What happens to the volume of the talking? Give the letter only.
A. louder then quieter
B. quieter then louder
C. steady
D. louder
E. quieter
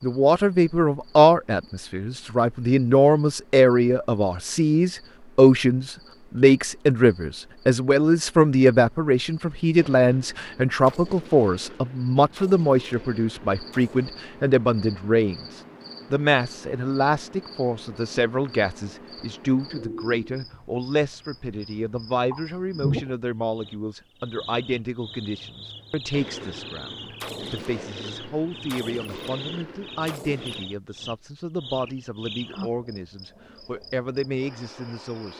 E.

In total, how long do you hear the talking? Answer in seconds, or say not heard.
35 s.